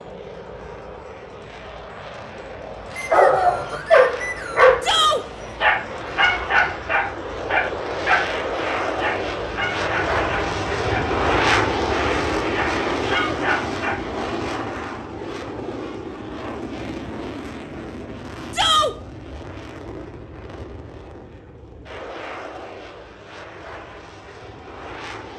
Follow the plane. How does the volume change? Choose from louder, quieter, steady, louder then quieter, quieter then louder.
louder then quieter.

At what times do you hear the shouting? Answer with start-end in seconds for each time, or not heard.
4.8-5.2, 13.0-13.4, 18.5-18.9.